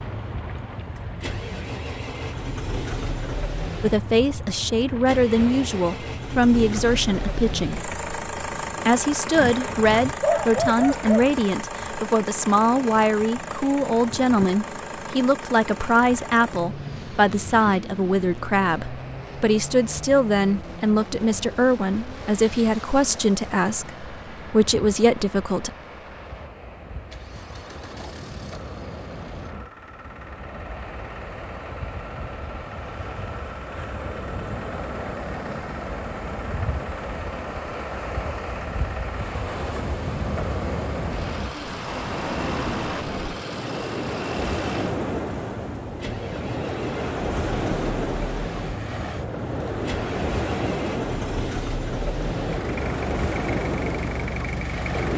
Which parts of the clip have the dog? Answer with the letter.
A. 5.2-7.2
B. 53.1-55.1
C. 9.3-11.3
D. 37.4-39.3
C.